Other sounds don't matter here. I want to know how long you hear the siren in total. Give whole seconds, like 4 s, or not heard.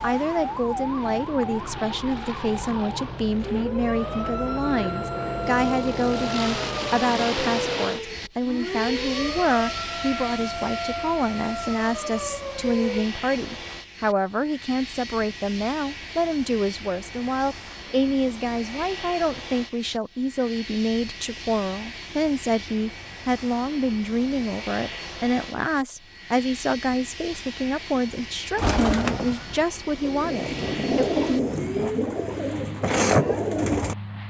13 s.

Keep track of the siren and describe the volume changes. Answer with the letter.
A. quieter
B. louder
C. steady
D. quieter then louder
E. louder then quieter
C.